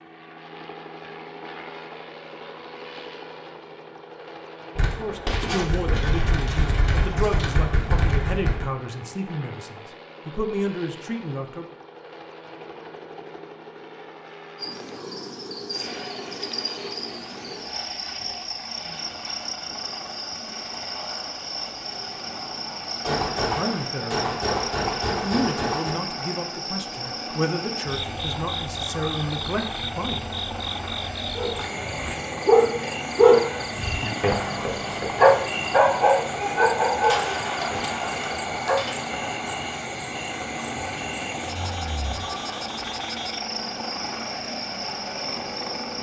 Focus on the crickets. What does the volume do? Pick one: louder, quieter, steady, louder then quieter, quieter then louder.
steady.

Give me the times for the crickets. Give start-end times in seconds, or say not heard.
14.6-45.9.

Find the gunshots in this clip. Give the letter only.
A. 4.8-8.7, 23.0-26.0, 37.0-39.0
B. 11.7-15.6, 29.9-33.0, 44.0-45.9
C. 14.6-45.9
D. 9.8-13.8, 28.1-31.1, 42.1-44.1
A.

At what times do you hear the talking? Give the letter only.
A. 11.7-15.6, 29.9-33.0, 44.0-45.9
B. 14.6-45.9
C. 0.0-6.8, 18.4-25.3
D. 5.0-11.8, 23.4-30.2
D.